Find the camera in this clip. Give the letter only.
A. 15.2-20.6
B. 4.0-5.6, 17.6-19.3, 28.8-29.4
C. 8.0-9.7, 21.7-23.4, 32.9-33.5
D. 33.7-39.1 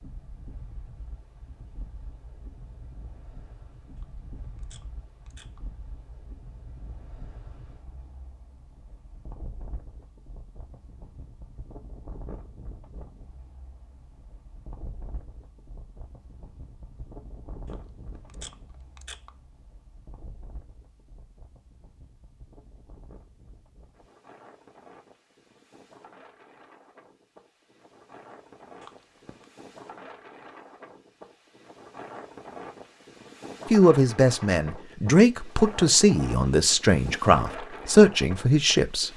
B.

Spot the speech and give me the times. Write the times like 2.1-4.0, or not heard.
33.7-39.1.